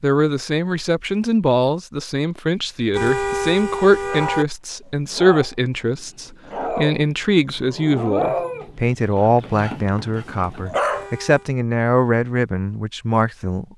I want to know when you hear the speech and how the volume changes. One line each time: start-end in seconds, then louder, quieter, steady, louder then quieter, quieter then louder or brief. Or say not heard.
0.0-13.7 steady.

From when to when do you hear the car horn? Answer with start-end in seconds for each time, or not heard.
2.9-4.5, 10.8-11.5.